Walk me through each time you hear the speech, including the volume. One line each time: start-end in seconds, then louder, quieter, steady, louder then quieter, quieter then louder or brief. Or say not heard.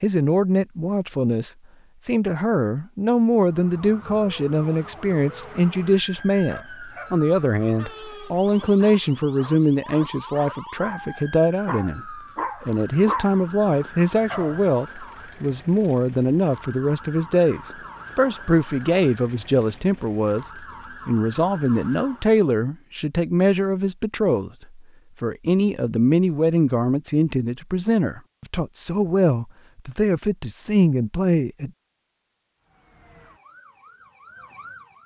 0.0-31.7 steady.